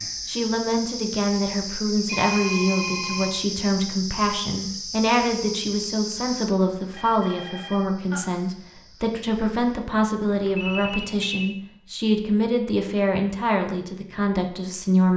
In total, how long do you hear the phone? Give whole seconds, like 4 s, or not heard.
4 s.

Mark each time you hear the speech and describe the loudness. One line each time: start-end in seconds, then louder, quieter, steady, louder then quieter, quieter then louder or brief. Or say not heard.
0.2-15.1 steady.